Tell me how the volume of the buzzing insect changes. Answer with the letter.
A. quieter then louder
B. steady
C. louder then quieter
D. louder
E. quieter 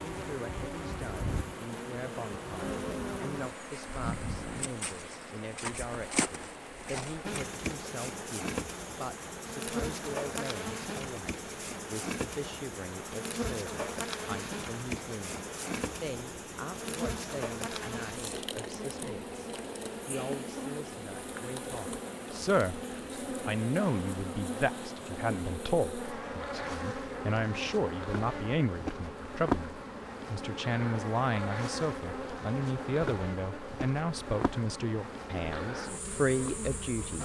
B.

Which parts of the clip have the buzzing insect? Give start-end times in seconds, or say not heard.
0.0-37.2.